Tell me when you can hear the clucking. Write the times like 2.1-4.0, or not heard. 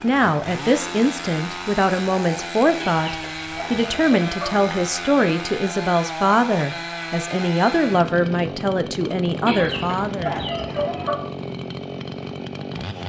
2.8-4.8, 9.4-11.2.